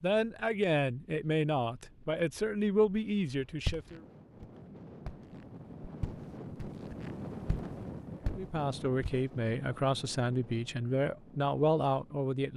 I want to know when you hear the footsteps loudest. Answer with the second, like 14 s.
4 s.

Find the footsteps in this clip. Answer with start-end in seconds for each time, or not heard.
3.6-9.2.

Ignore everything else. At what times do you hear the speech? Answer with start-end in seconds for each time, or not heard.
0.0-4.0, 8.3-12.5.